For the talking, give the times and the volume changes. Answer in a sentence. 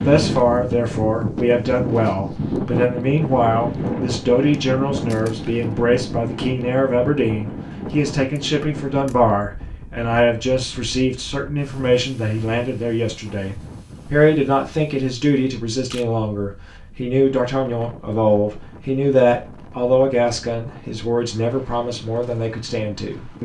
The talking can be heard from 0.0 to 23.4 s, at a steady volume.